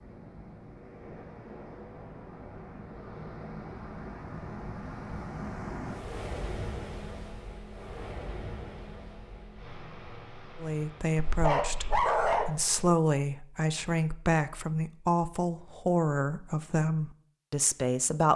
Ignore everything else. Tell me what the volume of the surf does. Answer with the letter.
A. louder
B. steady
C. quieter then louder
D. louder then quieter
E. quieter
D.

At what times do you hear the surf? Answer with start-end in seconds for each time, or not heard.
0.0-12.6.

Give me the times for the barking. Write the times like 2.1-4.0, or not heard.
11.2-12.8.